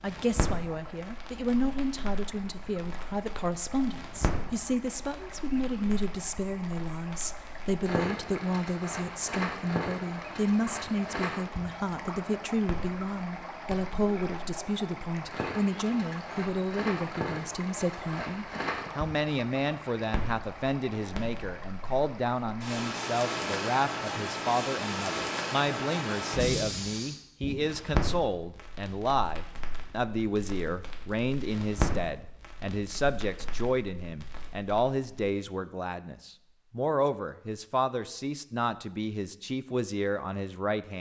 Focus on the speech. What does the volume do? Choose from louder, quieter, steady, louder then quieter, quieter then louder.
steady.